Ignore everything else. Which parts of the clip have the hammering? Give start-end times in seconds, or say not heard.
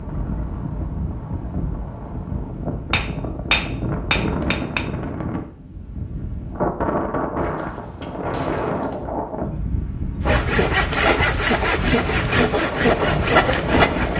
2.9-4.9.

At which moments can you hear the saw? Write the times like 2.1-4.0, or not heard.
10.2-14.1.